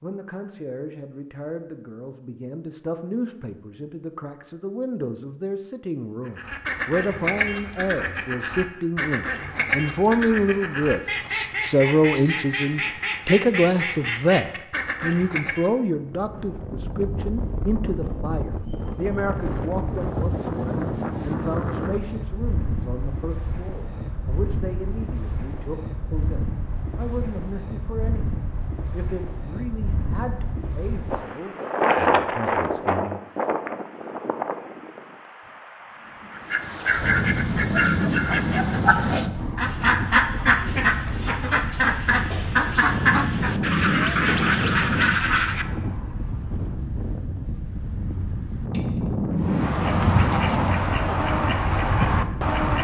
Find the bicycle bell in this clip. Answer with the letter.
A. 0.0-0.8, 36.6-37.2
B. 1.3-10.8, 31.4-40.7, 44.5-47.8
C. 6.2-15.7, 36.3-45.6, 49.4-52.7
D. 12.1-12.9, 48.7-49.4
D.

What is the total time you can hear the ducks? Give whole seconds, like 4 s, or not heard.
22 s.